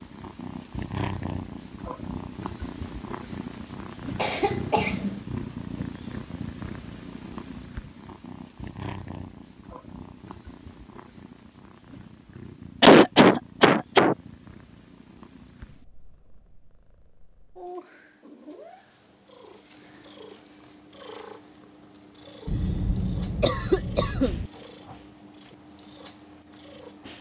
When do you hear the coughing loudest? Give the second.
13 s.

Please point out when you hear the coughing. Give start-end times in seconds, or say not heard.
4.2-5.2, 12.8-14.2, 22.4-24.5.